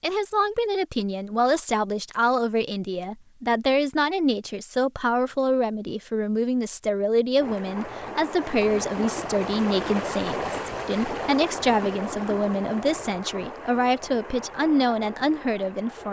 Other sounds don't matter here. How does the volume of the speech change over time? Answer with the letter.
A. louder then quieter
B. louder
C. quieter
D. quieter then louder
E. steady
E.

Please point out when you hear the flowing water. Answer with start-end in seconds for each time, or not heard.
7.3-16.0.